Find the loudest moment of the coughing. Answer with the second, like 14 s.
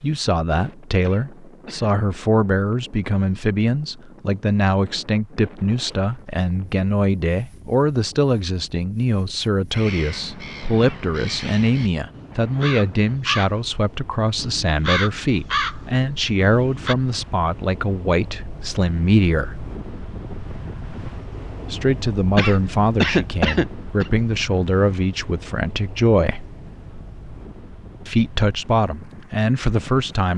23 s.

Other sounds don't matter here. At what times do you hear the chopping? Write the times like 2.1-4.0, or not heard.
not heard.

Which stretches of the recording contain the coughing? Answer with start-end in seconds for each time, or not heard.
1.0-1.9, 10.8-11.6, 22.4-24.1.